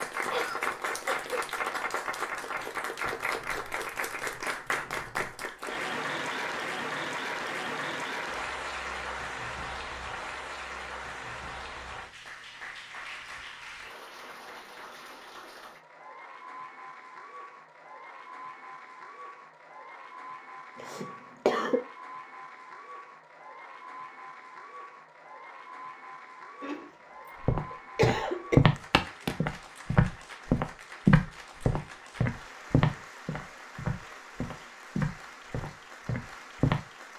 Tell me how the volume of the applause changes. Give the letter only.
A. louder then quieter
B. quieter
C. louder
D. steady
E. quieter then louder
B.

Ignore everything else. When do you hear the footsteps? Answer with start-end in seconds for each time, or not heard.
27.4-36.8.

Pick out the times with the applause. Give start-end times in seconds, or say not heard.
0.0-37.1.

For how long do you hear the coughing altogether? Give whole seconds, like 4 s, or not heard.
4 s.